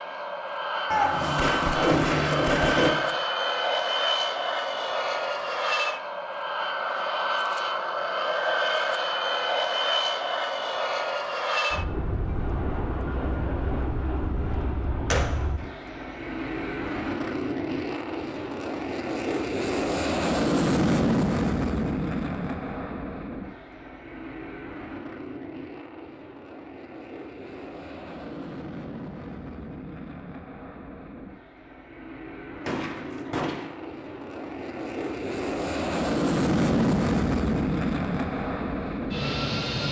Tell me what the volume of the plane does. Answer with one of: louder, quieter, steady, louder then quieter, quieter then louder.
quieter then louder.